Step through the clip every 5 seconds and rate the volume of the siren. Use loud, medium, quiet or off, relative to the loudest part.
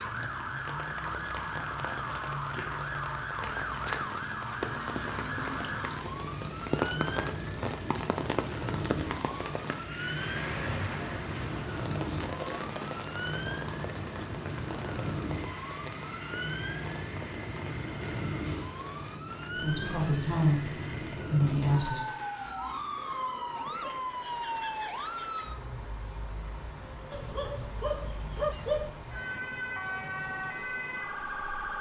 loud, loud, loud, loud, loud, medium, loud.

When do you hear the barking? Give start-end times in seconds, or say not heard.
27.1-28.9.